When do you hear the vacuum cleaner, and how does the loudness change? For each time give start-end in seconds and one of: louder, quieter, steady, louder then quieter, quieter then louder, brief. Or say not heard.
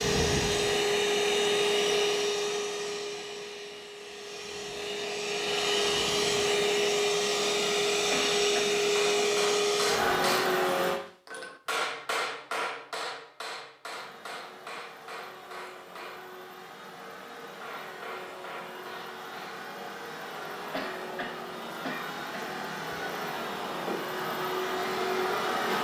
0.0-11.0 quieter then louder
13.8-25.7 louder.